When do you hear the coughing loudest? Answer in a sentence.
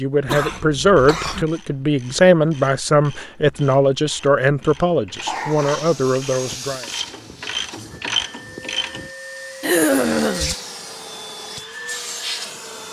The loudest moment of the coughing is at 10 seconds.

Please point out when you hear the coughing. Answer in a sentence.
You can hear the coughing from 0.2 to 1.4 s, from 5.2 to 6.5 s and from 9.6 to 10.6 s.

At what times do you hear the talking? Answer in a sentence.
The talking can be heard from 0.0 to 6.8 s.